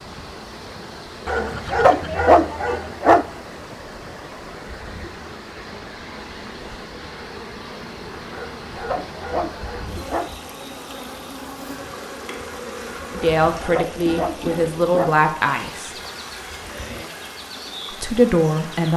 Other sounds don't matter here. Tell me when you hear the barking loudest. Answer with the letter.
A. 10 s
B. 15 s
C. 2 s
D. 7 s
C.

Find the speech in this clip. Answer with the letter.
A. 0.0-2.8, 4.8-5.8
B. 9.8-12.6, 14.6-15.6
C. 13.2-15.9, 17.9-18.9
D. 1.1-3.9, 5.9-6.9
C.